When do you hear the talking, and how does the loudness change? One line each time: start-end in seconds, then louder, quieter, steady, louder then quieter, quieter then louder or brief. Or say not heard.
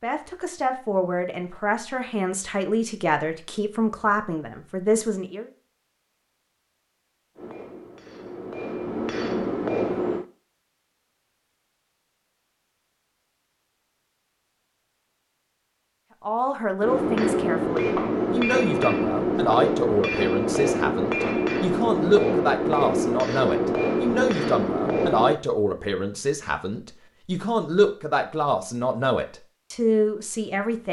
0.0-5.5 steady
16.2-30.8 steady.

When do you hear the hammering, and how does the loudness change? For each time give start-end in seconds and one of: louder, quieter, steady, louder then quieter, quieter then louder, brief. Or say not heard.
7.3-10.2 brief
16.8-25.4 steady.